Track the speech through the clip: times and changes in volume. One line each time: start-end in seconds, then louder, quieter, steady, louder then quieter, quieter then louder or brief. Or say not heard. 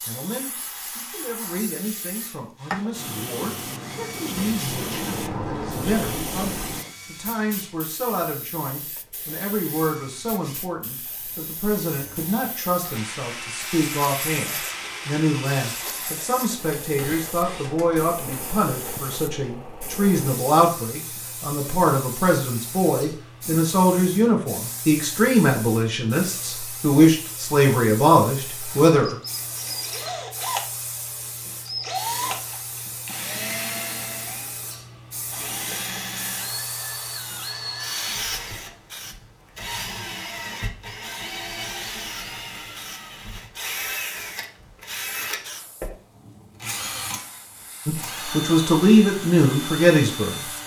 0.0-29.1 louder
47.9-50.4 brief.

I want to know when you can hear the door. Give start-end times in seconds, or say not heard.
4.3-6.9.